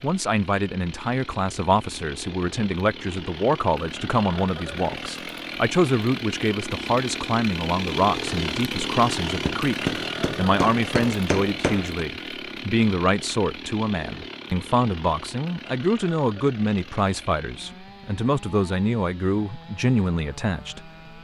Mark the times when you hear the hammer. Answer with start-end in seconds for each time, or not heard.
9.4-12.1.